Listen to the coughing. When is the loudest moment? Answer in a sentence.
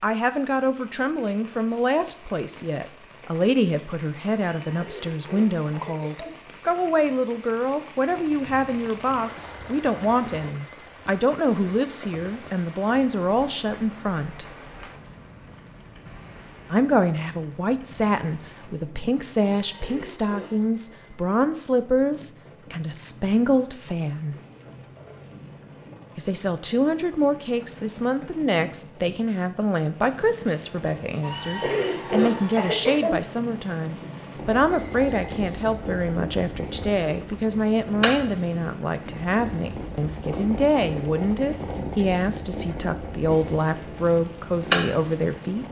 The loudest moment of the coughing is at 32 seconds.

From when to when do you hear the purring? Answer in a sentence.
You can hear the purring from 34.4 to 45.6 s.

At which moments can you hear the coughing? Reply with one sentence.
You can hear the coughing from 4.5 to 6.3 s, from 19.6 to 20.6 s and from 31.2 to 33.1 s.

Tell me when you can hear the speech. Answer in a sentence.
The speech can be heard from 0.0 to 14.4 s, from 16.7 to 24.4 s and from 26.1 to 45.6 s.